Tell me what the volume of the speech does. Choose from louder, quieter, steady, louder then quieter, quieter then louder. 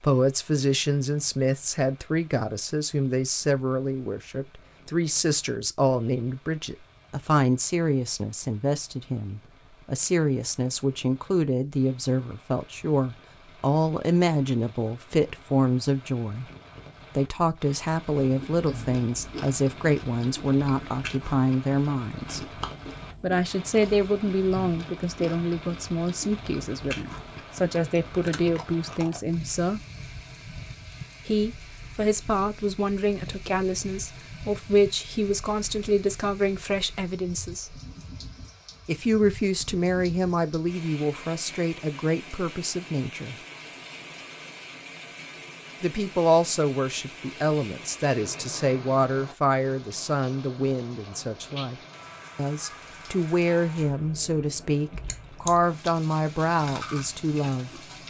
steady.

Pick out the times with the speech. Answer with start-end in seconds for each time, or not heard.
0.0-16.4, 17.1-22.5, 23.2-29.8, 31.2-37.8, 38.9-43.4, 45.8-57.8.